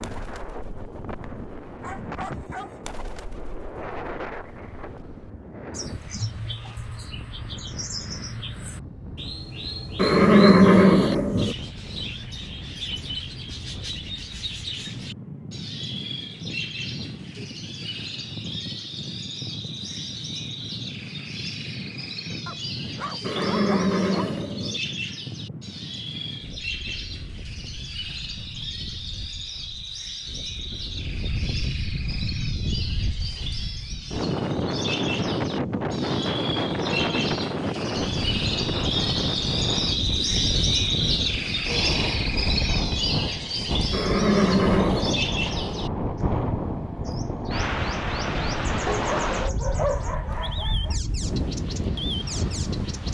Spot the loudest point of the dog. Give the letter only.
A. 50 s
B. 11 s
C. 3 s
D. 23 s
A.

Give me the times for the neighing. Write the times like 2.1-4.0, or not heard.
9.9-11.6, 23.2-24.8, 43.9-45.3.